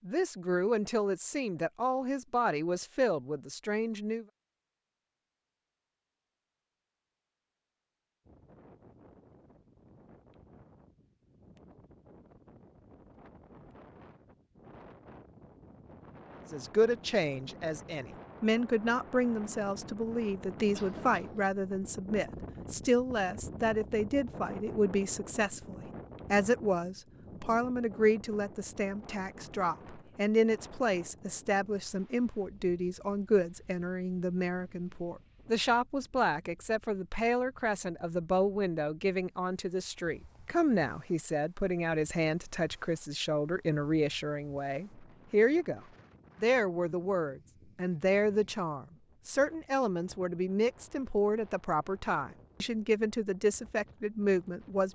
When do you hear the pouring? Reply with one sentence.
The pouring can't be heard in this clip.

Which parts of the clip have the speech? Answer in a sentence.
You can hear the speech from 0.1 to 4.2 s, from 16.5 to 45.8 s and from 46.4 to 54.9 s.